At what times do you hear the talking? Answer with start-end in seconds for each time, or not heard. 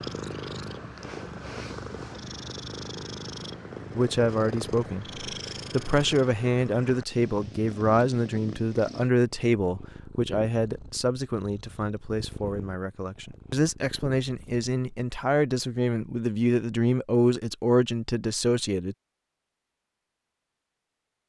4.0-18.9.